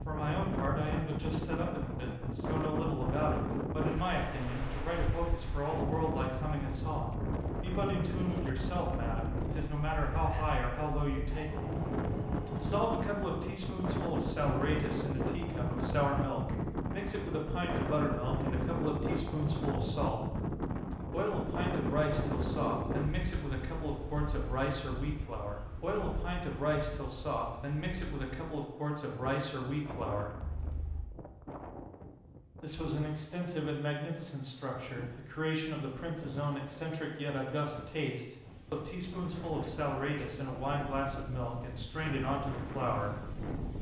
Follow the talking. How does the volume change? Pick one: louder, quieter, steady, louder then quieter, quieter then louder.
steady.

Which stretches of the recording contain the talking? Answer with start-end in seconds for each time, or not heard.
0.1-11.8, 12.6-20.4, 21.1-30.4, 32.6-43.7.